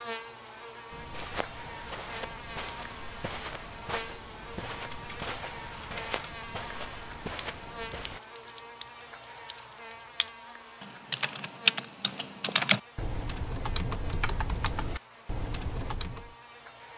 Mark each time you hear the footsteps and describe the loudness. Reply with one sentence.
You can hear the footsteps from 0.9 to 8.2 s, at a steady volume.